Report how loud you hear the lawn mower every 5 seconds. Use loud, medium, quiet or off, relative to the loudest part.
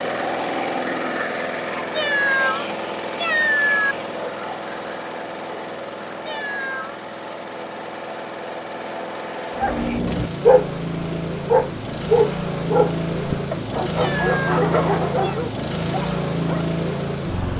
loud, medium, loud, loud.